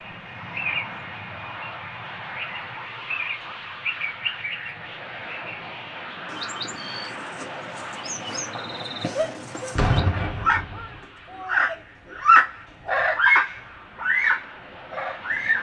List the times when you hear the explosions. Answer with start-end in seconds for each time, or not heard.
9.8-11.0.